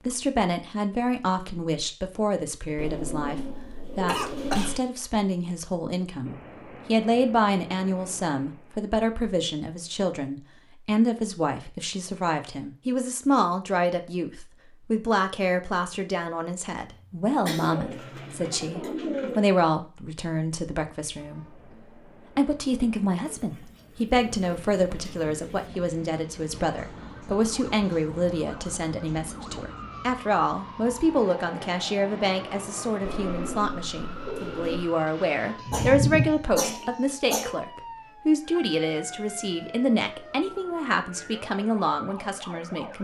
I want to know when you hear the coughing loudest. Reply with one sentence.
The volume of the coughing peaks at 36 seconds.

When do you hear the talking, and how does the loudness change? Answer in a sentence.
You can hear the talking from 0.1 to 21.6 s, at a steady volume; and from 22.4 to 42.9 s, at a steady volume.